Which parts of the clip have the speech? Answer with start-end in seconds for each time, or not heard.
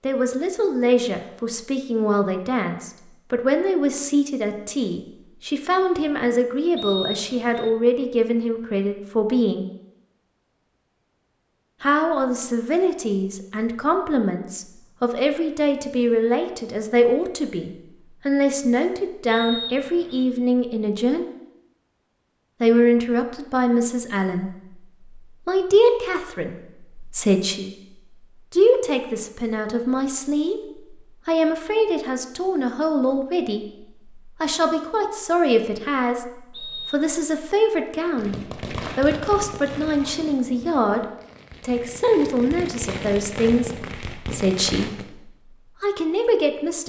0.0-9.7, 11.8-21.2, 22.6-46.8.